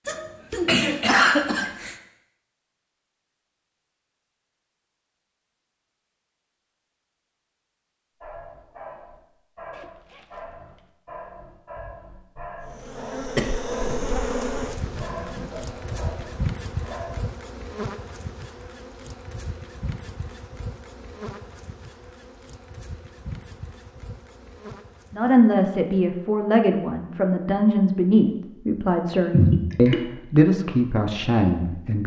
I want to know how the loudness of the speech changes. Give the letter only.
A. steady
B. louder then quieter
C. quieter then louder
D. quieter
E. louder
A.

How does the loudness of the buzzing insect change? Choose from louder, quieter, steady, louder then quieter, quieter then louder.
quieter.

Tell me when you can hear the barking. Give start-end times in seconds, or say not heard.
8.2-17.2.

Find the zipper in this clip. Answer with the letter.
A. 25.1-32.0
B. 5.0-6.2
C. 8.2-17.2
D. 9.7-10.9
D.